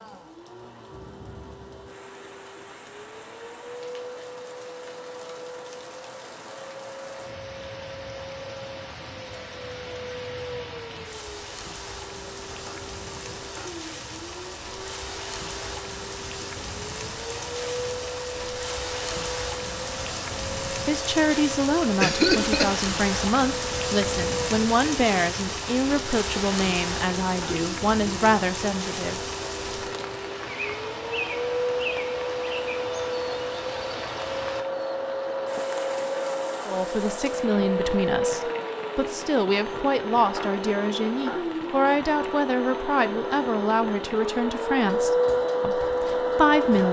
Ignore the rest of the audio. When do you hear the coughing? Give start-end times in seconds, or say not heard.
22.0-22.8.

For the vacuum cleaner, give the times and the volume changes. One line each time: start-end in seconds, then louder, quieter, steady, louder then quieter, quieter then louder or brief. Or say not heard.
0.0-46.8 louder.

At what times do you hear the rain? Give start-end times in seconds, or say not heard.
0.0-46.8.